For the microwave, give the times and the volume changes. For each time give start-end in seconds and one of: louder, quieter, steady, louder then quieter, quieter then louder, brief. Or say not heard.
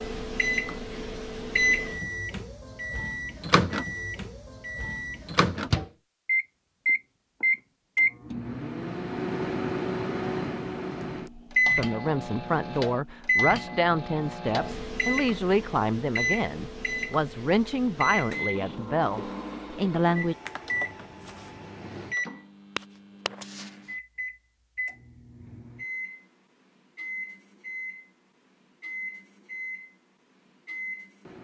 0.0-31.4 quieter.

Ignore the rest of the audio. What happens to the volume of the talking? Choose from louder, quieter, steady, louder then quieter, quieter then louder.
steady.